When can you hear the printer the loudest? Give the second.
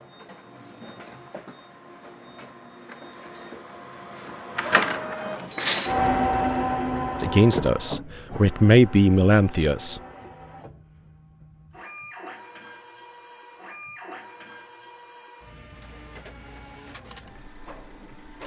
6 s.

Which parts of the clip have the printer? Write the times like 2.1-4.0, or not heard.
0.0-18.4.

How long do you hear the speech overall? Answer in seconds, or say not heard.
3 s.